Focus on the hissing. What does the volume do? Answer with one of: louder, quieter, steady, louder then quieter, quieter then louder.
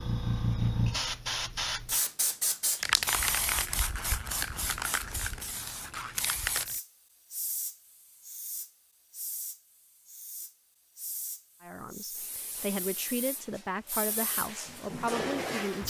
quieter then louder.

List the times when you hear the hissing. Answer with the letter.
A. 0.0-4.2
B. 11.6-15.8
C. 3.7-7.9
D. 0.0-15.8
D.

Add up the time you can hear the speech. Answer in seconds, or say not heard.
4 s.